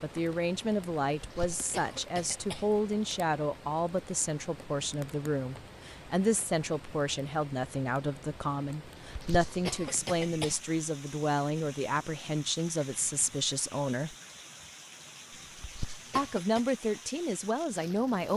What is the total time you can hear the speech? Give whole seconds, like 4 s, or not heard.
16 s.